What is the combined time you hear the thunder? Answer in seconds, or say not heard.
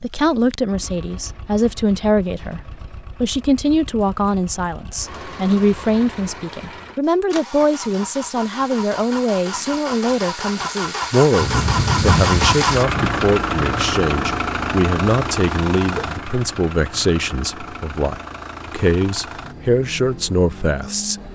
2 s.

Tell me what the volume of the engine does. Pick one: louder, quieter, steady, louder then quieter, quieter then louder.
louder then quieter.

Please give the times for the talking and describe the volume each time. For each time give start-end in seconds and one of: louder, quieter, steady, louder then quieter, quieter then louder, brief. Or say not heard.
0.0-21.1 steady.